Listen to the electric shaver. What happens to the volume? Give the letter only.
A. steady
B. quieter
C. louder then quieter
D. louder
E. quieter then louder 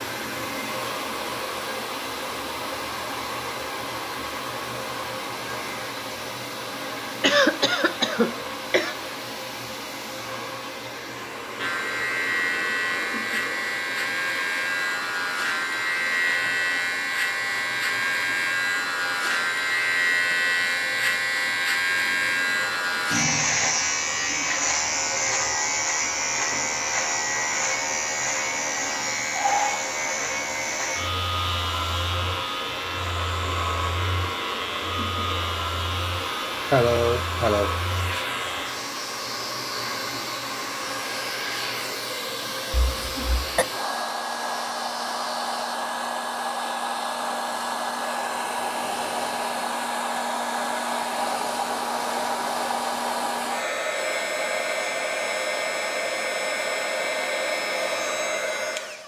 B.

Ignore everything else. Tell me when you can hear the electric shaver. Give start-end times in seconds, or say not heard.
11.6-45.8.